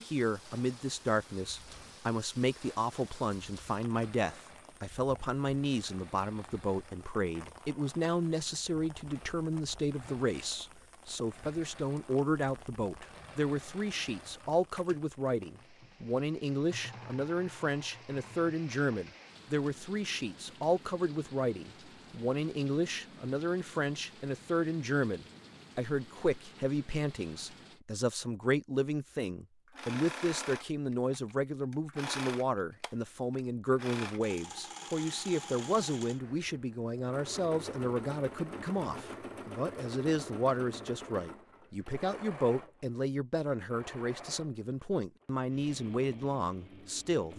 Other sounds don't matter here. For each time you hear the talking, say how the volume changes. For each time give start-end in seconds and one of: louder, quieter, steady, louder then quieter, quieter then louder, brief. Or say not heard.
0.0-47.3 steady.